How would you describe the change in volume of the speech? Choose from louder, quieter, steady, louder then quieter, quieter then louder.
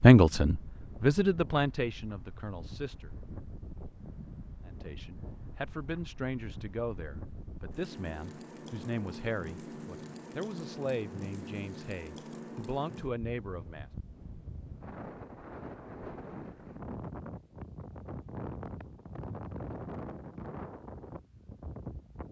quieter.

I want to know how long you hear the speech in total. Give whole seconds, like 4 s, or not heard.
12 s.